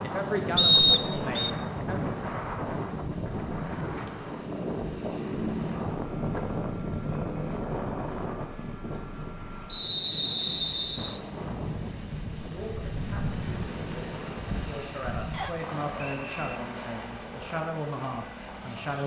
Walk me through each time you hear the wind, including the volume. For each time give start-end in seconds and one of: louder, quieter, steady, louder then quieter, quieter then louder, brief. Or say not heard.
0.0-14.5 quieter.